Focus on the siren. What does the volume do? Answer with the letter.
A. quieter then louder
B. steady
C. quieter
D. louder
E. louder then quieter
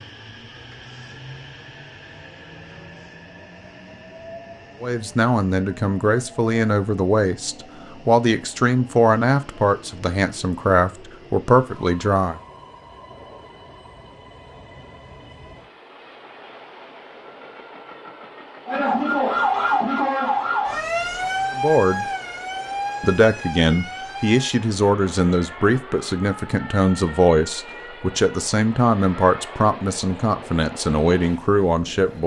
C.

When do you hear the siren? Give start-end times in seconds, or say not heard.
18.6-29.8.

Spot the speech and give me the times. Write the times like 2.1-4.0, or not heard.
4.8-12.4, 21.6-22.1, 23.0-32.2.